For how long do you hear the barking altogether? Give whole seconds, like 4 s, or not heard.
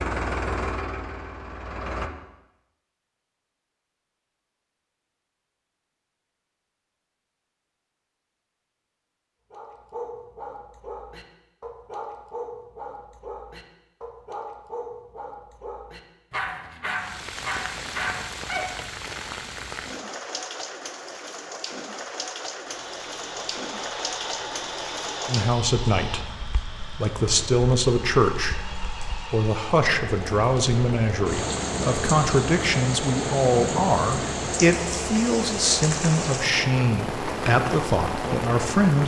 9 s.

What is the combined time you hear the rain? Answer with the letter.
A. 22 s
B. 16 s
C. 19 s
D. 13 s
A.